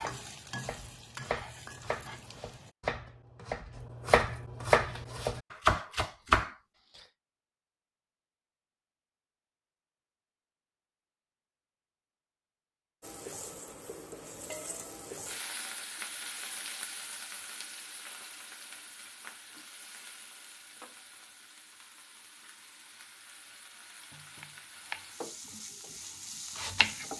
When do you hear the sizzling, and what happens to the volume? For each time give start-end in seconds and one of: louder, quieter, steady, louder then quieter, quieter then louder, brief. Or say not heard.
0.0-2.7 brief
13.0-27.1 quieter then louder.